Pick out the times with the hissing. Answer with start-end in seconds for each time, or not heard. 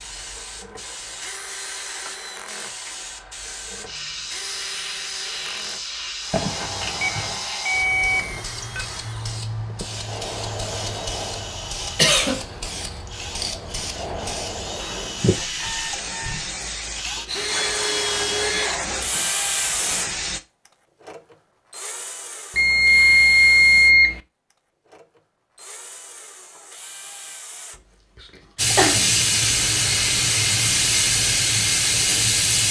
0.0-20.4, 28.6-32.6.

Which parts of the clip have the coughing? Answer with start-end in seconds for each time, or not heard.
6.3-7.4, 11.9-12.4, 28.1-29.1.